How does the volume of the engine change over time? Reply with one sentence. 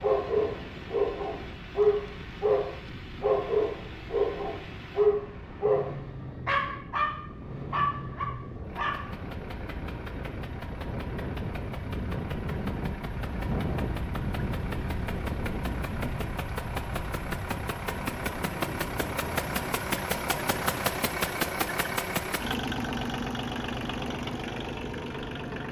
The loudness of the engine goes up.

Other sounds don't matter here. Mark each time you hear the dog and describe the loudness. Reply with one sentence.
The dog can be heard from 0.0 to 9.1 s, at a steady volume.